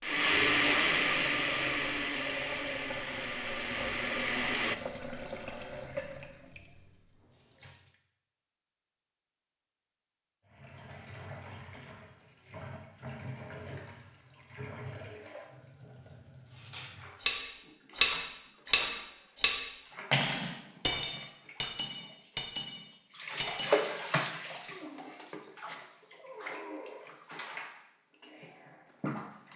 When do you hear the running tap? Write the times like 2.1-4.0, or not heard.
0.1-7.9, 10.4-29.5.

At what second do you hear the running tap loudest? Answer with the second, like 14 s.
24 s.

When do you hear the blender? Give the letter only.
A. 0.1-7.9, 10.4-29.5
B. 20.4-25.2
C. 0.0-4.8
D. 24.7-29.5
C.